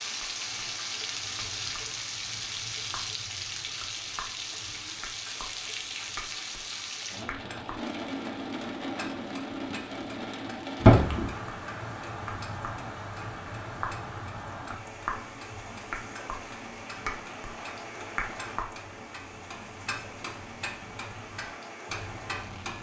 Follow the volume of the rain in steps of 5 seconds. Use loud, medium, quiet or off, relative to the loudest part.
loud, loud, loud, medium, medium.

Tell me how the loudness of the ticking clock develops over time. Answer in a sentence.
The loudness of the ticking clock goes up.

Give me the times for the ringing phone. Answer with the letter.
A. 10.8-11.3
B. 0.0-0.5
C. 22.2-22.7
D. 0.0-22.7
A.